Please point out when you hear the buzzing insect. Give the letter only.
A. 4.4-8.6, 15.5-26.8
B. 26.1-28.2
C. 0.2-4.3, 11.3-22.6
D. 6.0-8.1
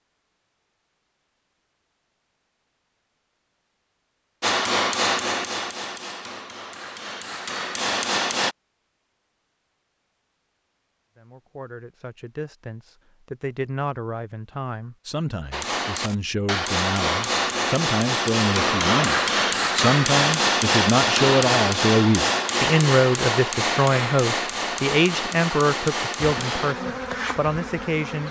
B.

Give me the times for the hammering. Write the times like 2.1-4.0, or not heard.
4.4-8.6, 15.5-26.8.